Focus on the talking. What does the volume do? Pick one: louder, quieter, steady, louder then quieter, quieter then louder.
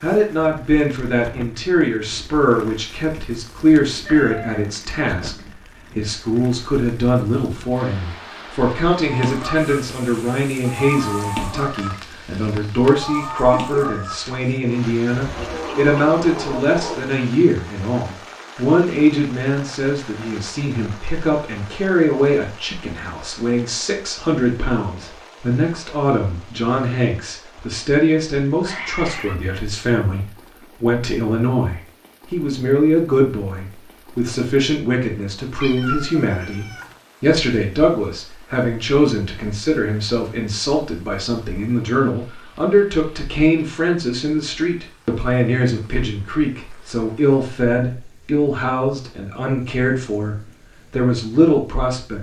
steady.